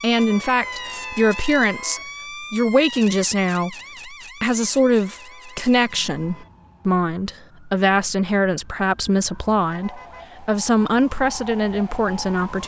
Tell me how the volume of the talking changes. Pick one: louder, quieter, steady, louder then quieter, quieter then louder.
steady.